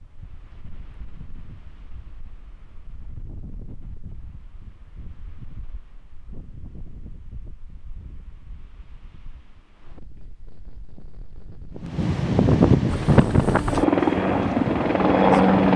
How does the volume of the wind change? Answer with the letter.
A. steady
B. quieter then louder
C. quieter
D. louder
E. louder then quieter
D.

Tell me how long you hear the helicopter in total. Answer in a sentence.
The helicopter can be heard for 3 seconds in total.